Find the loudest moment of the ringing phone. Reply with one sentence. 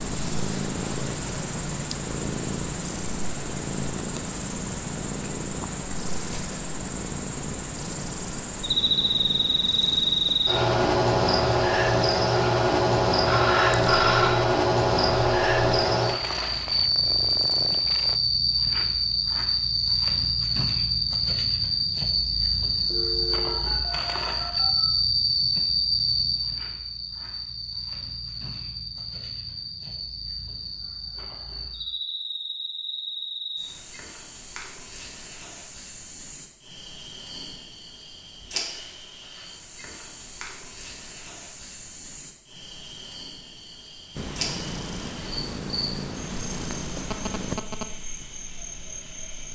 The loudest moment of the ringing phone is at 14 seconds.